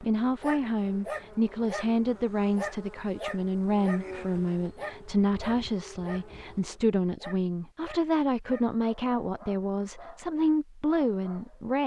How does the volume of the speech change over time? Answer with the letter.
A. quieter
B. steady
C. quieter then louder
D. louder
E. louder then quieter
B.